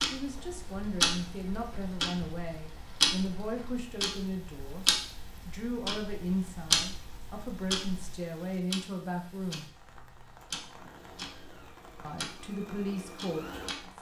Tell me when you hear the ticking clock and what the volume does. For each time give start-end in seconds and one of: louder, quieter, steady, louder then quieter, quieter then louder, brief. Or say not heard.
0.0-13.9 quieter.